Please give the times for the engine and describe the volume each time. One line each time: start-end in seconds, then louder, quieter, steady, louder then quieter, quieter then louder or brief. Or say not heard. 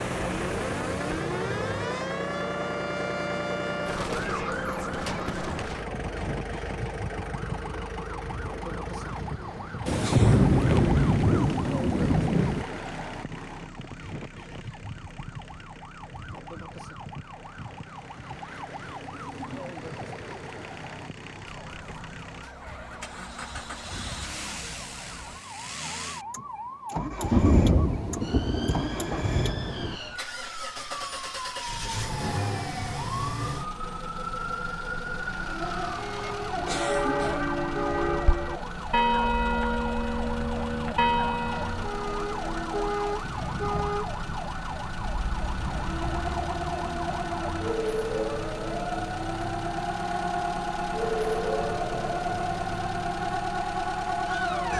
0.0-54.7 quieter then louder.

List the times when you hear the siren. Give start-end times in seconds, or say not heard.
0.0-54.7.